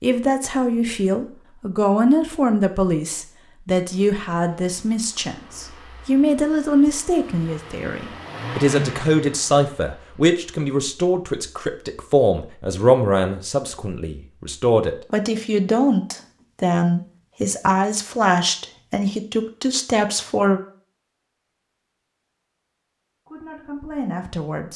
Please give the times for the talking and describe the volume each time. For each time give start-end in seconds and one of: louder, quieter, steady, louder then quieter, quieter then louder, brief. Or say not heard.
0.0-20.6 steady
23.2-24.7 brief.